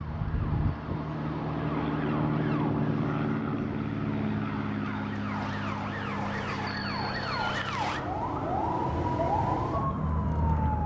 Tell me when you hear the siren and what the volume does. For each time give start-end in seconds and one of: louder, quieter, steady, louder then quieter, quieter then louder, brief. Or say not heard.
0.0-10.8 louder.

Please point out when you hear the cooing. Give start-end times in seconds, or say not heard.
not heard.